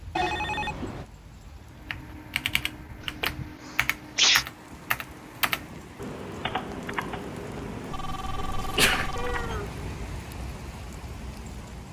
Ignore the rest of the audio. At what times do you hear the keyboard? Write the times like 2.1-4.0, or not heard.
1.8-10.0.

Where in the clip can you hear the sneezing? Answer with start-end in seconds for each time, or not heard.
3.0-4.5, 8.6-9.7.